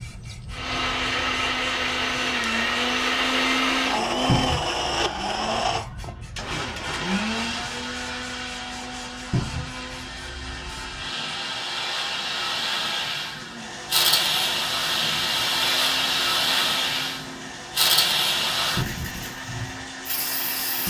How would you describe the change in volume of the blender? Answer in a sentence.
The volume of the blender goes down.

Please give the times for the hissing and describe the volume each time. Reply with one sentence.
You can hear the hissing from 0.0 to 20.8 s, getting louder.